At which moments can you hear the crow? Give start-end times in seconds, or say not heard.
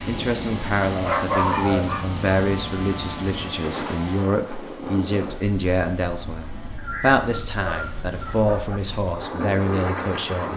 not heard.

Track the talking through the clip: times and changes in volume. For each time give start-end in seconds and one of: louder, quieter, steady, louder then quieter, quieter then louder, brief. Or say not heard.
0.1-10.5 steady.